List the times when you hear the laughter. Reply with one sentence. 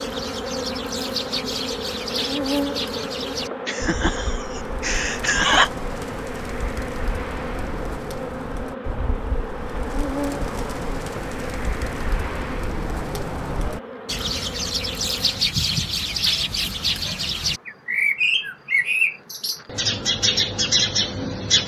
The laughter can be heard from 3.6 to 5.7 s.